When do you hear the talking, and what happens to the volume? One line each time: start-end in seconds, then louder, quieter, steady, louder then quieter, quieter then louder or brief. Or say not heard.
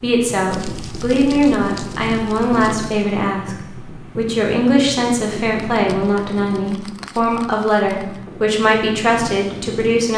0.0-10.1 steady.